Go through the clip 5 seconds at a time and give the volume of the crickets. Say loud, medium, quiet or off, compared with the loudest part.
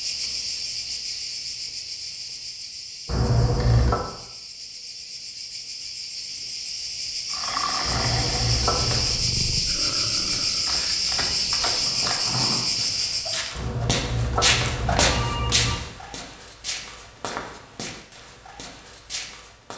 medium, loud, loud, off.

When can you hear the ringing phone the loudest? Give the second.
4 s.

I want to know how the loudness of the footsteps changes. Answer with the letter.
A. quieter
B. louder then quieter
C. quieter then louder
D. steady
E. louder
B.